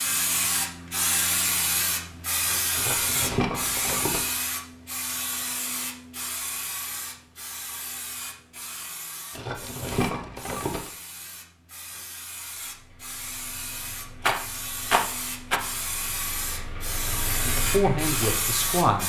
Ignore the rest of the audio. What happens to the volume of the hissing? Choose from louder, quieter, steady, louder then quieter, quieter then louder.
quieter then louder.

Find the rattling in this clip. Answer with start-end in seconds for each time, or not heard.
2.7-4.3, 9.3-10.9, 14.2-15.6.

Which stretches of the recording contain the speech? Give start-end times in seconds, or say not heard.
17.4-19.0.